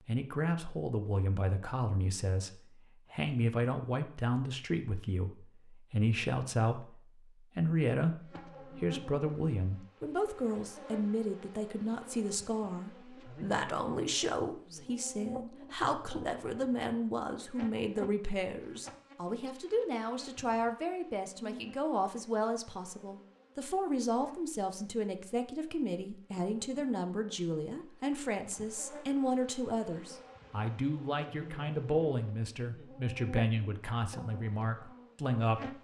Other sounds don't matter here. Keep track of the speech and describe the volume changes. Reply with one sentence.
The loudness of the speech stays about the same.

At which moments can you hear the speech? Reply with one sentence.
The speech can be heard from 0.1 to 7.0 s and from 7.5 to 35.8 s.